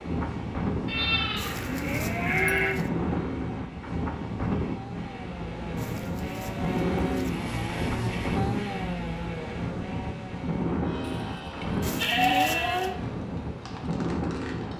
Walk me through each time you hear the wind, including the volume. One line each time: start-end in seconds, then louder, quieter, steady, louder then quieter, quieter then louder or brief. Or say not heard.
0.0-14.7 steady.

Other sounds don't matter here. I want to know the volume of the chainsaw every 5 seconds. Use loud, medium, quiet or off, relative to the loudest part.
medium, loud, medium.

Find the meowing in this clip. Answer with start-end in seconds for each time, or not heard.
1.4-2.9, 5.8-7.4, 11.8-12.9.